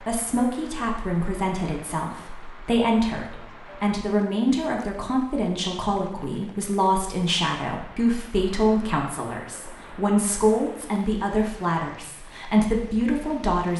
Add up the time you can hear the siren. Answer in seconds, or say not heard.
not heard.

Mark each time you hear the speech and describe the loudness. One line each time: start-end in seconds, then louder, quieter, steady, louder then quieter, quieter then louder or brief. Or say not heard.
0.0-13.7 steady.